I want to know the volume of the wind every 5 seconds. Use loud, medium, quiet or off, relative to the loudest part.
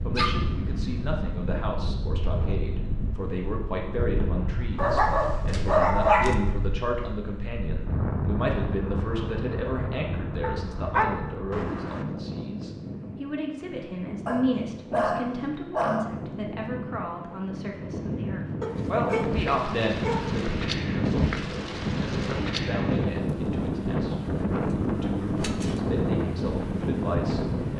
medium, medium, medium, medium, loud, loud.